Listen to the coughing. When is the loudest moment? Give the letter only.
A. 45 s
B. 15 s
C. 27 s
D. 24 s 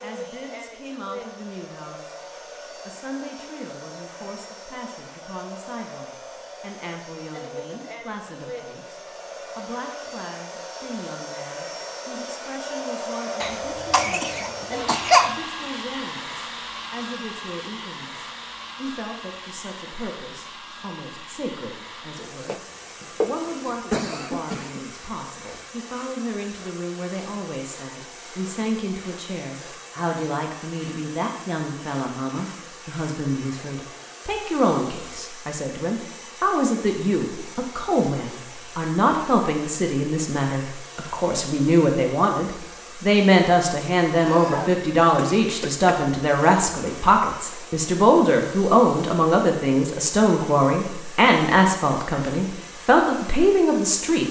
B.